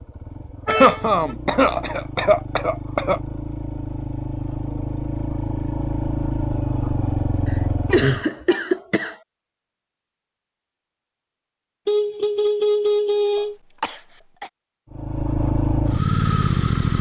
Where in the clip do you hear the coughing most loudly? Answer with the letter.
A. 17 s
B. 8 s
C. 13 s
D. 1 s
D.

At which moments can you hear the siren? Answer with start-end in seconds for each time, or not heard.
not heard.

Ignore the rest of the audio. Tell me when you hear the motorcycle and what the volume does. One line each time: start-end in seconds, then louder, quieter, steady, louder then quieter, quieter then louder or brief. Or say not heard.
0.0-8.2 louder
14.9-16.9 brief.